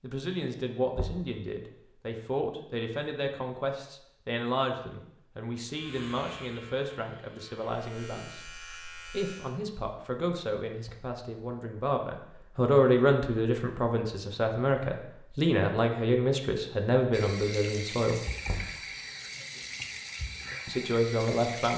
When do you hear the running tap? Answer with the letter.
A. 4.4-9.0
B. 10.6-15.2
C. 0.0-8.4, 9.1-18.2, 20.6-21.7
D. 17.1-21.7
D.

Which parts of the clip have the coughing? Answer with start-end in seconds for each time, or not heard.
not heard.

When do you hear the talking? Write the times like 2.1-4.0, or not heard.
0.0-8.4, 9.1-18.2, 20.6-21.7.